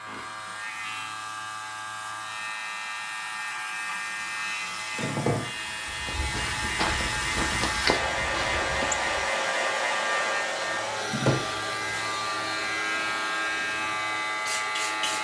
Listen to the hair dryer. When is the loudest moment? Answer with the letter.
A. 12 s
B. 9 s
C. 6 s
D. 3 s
B.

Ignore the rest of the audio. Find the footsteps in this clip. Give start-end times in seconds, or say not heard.
5.8-9.2.